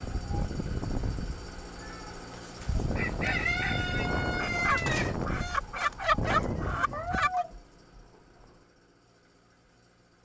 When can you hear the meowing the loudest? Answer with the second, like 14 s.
7 s.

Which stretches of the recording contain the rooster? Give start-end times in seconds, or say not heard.
2.8-7.5.